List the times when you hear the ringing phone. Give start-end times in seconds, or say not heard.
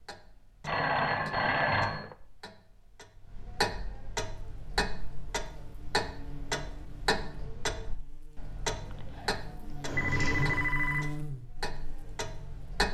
0.7-2.1, 8.8-11.2.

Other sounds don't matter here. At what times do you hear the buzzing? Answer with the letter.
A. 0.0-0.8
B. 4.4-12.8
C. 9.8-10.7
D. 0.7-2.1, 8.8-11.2
B.